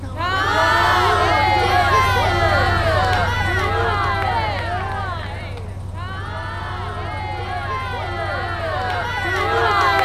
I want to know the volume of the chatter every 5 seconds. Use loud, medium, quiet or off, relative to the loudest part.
loud, medium.